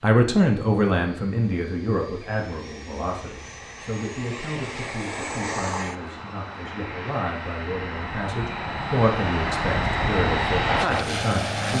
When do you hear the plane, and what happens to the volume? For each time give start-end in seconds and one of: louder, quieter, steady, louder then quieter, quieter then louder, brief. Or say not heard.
0.0-11.7 louder.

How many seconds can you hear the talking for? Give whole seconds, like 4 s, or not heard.
12 s.